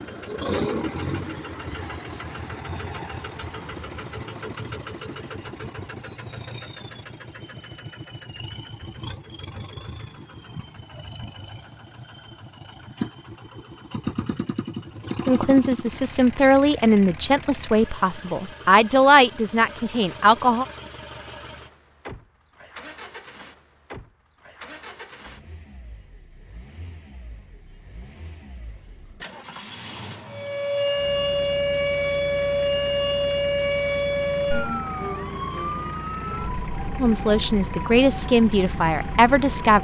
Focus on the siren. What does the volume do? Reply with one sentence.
The loudness of the siren goes down.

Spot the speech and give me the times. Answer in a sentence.
The speech can be heard from 15.2 to 20.6 s and from 37.0 to 39.7 s.